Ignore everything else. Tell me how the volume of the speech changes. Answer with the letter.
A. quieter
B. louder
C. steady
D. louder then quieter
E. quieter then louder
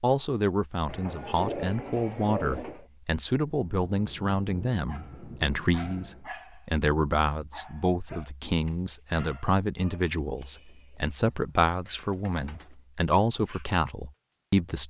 C.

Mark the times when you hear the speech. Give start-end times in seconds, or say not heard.
0.0-14.8.